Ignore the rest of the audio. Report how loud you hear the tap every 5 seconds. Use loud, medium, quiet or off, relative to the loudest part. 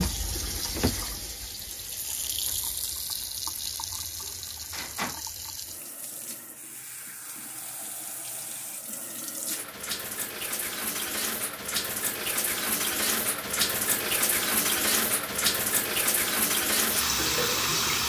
medium, quiet, loud, loud.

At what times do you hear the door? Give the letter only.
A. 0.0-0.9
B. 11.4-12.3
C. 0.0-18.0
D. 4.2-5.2
D.